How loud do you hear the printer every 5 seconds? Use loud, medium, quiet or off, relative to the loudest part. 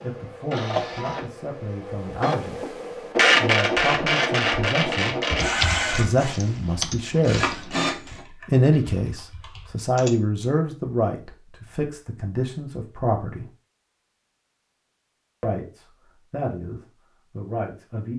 loud, loud, off, off.